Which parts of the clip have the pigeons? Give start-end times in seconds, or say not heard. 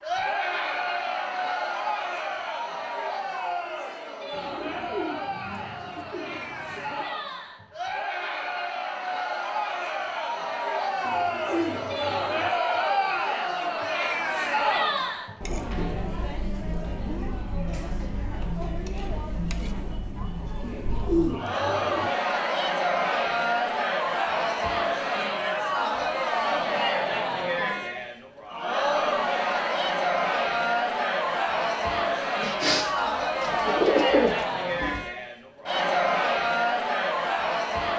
4.3-7.0, 11.0-12.5, 20.6-22.1, 32.4-35.0.